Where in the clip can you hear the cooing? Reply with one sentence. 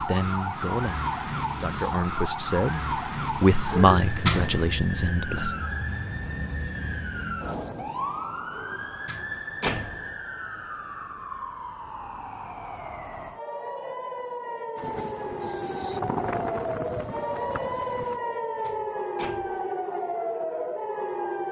The cooing can't be heard in this clip.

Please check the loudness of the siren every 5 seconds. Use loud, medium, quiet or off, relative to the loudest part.
loud, loud, medium, loud, loud.